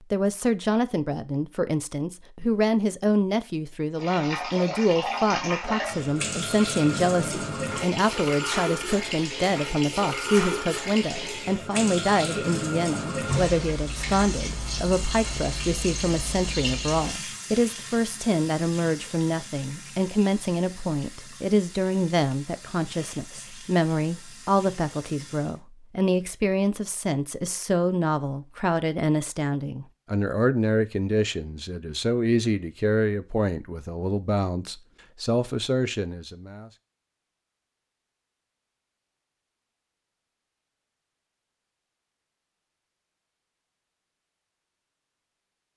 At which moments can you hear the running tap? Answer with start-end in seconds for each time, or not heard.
4.0-25.6.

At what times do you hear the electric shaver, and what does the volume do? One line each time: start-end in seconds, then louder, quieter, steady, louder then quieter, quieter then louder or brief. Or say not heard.
not heard.